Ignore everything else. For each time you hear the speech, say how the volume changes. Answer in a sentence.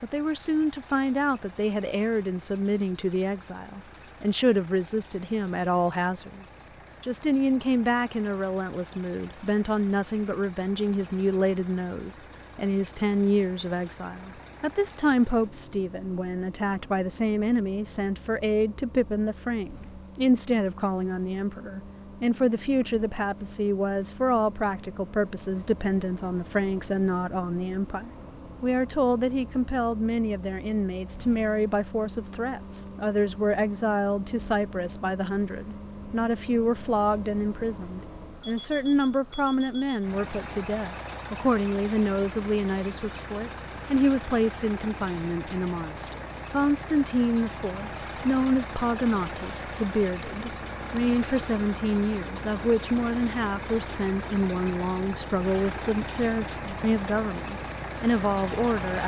You can hear the speech from 0.0 to 59.0 s, at a steady volume.